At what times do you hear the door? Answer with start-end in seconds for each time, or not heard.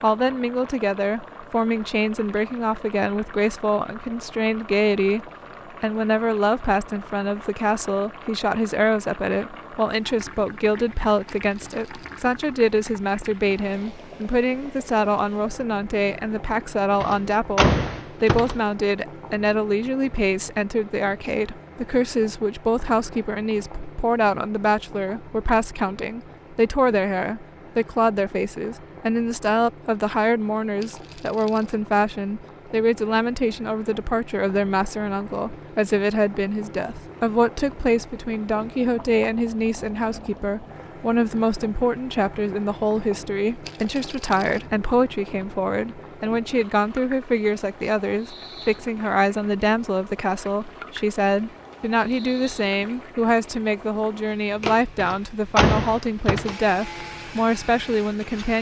17.0-18.6, 55.0-56.5.